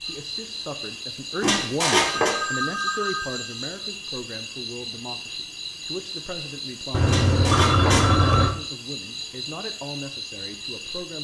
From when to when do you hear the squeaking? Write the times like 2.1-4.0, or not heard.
1.4-2.4, 7.0-8.1.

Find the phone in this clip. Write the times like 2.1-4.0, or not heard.
2.0-3.8, 6.9-8.6.